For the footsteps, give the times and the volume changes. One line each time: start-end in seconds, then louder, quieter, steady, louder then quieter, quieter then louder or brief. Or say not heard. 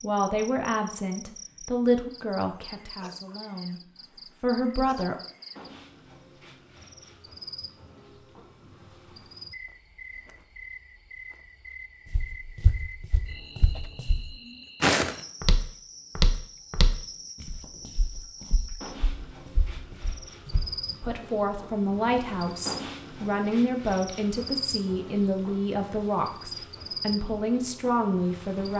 12.1-20.9 louder then quieter.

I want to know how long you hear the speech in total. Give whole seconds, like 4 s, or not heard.
13 s.